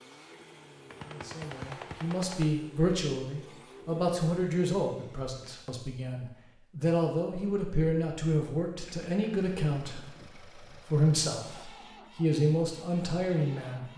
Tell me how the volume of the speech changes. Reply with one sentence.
The loudness of the speech stays about the same.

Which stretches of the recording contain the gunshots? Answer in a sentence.
The gunshots can be heard from 0.9 to 2.5 s.